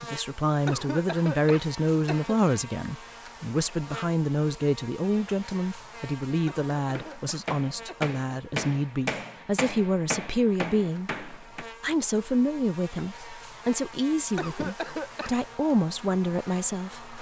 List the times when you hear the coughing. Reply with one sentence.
The coughing can be heard from 0.7 to 2.4 s, from 6.5 to 8.2 s and from 14.3 to 15.3 s.